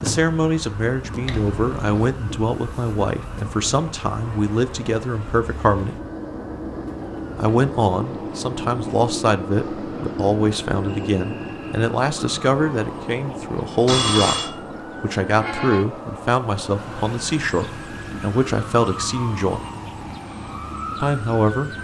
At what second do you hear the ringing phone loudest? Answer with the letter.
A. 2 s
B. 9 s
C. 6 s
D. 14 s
D.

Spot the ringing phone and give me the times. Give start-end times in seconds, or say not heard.
1.2-2.1, 13.8-14.5.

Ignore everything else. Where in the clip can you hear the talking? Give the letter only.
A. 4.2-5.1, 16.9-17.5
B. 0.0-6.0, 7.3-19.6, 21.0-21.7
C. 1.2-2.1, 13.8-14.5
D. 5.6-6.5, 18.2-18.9
B.